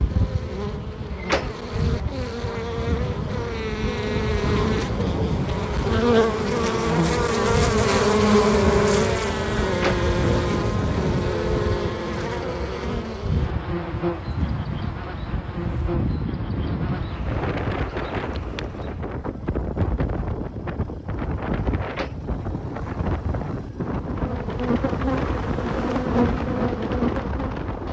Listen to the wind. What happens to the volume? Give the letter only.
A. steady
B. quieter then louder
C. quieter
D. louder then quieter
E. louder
A.